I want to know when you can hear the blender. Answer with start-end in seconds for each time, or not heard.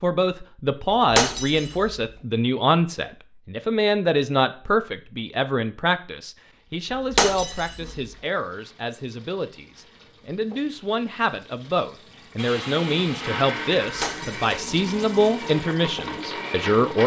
12.3-17.0.